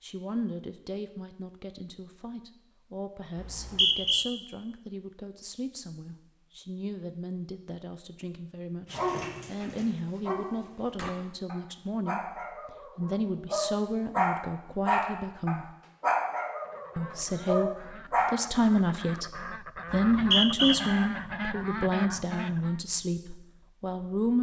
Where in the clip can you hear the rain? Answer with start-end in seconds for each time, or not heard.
not heard.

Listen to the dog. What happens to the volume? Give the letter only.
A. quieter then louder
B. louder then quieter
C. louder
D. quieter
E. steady
B.